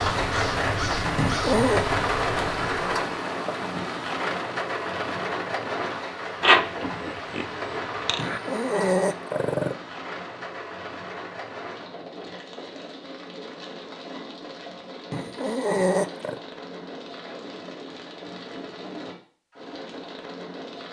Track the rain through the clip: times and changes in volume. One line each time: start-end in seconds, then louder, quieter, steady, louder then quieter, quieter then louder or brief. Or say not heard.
0.0-20.8 quieter.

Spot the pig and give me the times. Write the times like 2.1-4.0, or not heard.
6.4-8.4.